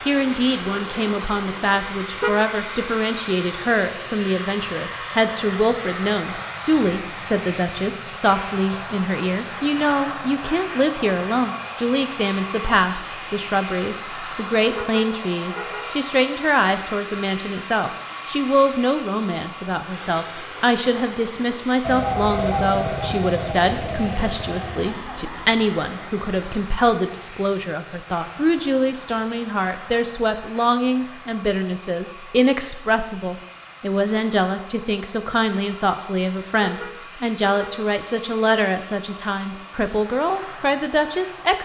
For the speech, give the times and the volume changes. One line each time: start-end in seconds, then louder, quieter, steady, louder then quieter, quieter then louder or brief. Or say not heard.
0.0-41.6 steady.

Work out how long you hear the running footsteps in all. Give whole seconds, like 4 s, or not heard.
not heard.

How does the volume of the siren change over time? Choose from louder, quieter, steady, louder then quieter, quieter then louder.
quieter.